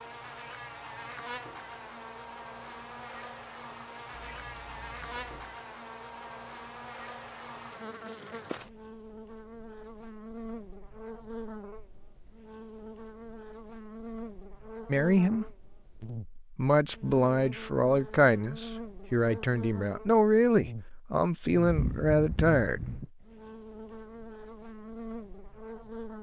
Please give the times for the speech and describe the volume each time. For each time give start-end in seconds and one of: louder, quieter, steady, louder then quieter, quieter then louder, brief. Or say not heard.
14.8-15.4 brief
16.6-22.9 steady.